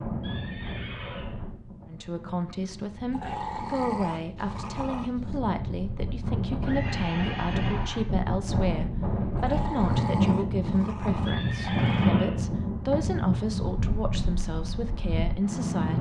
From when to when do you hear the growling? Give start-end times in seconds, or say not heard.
3.1-5.4, 9.3-12.1.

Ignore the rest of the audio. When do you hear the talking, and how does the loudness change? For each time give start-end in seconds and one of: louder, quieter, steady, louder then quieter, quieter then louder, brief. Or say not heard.
1.9-15.9 steady.